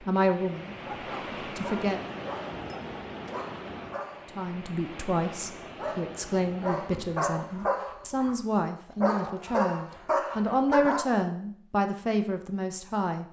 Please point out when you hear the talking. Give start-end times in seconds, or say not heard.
0.0-2.1, 4.3-13.2.